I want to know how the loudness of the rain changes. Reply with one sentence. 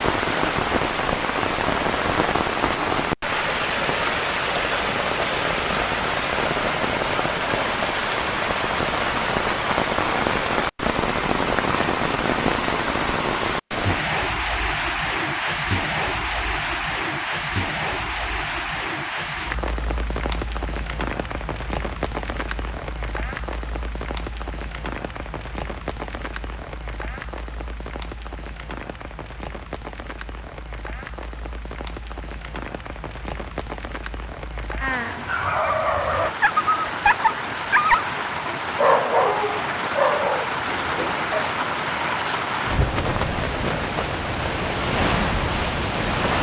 The loudness of the rain goes down, then up.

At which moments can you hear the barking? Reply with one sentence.
The barking can be heard from 34.9 to 41.5 s.